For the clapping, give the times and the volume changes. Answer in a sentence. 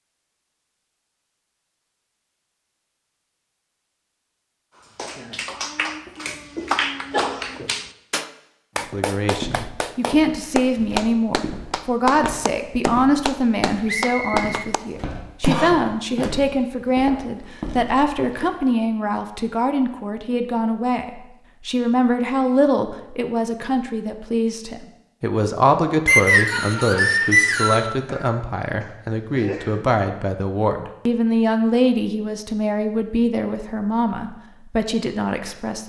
The clapping can be heard from 5.0 to 16.4 s, at a steady volume.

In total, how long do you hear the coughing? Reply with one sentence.
The coughing can be heard for 4 seconds in total.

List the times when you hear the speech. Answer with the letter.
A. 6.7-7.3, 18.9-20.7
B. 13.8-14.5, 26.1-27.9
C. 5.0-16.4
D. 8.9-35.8
D.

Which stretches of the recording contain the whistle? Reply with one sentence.
The whistle can be heard from 13.8 to 14.5 s and from 26.1 to 27.9 s.